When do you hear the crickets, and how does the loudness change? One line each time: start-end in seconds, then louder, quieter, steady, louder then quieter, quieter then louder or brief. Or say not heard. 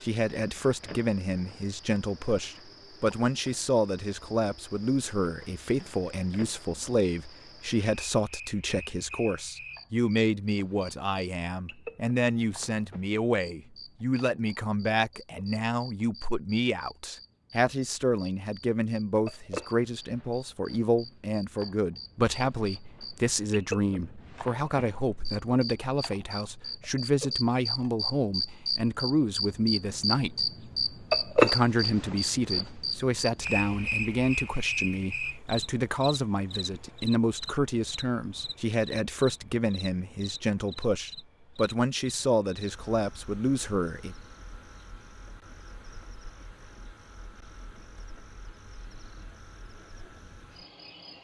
0.0-51.1 louder then quieter.